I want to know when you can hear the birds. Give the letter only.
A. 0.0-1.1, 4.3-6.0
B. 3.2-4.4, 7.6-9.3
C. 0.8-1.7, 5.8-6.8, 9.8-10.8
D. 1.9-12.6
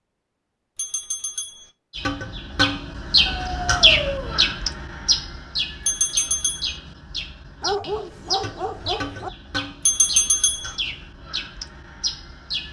D.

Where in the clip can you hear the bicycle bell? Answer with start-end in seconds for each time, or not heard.
0.8-1.7, 5.8-6.8, 9.8-10.8.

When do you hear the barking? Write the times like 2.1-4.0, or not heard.
3.2-4.4, 7.6-9.3.